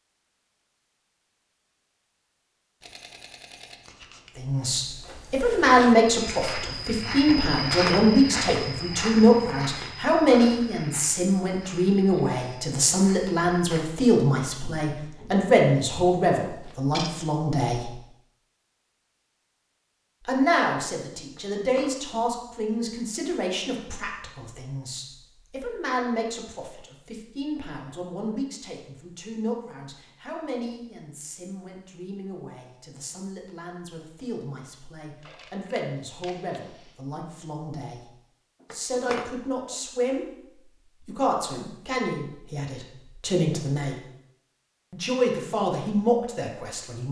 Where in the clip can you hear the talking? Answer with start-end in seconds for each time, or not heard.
4.3-17.9, 20.2-40.2, 41.0-44.0, 44.9-47.0.